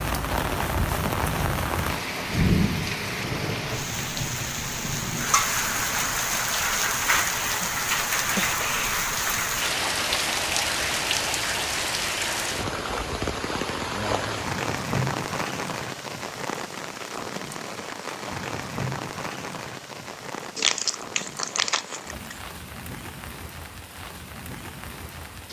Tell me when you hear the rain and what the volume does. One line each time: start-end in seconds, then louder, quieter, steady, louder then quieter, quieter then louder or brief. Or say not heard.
0.0-25.4 quieter.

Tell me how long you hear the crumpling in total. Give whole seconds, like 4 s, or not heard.
2 s.